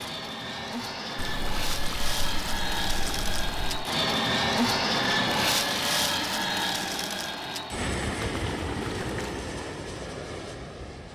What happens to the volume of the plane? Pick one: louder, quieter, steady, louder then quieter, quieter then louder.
louder then quieter.